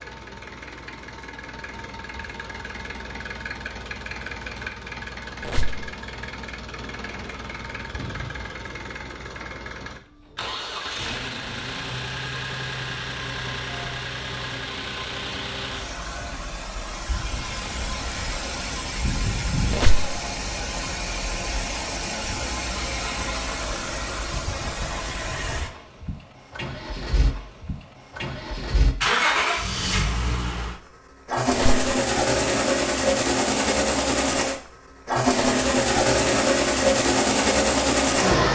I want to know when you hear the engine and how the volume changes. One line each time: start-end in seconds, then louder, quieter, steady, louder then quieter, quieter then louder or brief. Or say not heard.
0.0-38.4 louder.